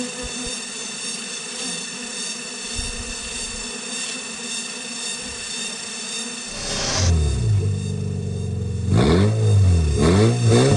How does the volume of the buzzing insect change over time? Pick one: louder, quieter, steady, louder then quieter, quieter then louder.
quieter.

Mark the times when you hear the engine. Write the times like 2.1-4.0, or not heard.
6.5-10.7.